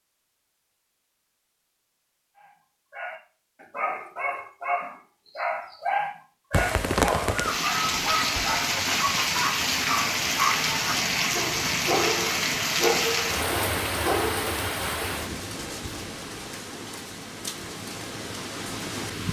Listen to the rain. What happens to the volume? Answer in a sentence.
The loudness of the rain goes down.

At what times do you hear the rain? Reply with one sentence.
You can hear the rain from 6.5 to 19.2 s.